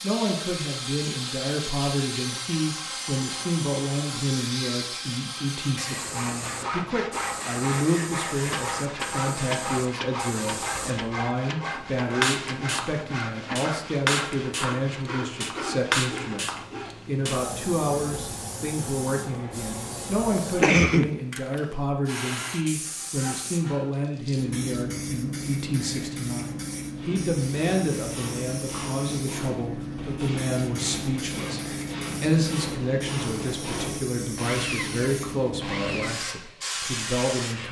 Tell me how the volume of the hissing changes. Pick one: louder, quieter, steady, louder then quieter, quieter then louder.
steady.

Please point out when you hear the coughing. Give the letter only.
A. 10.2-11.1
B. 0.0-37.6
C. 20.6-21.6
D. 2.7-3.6
C.